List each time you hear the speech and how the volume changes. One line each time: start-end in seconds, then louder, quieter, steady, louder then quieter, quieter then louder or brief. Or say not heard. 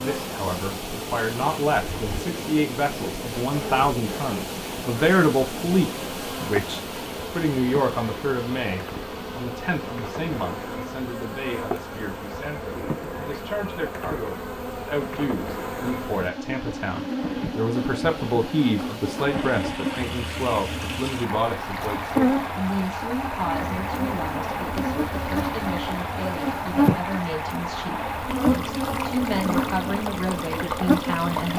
0.0-31.5 quieter.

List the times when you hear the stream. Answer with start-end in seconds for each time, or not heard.
0.0-31.5.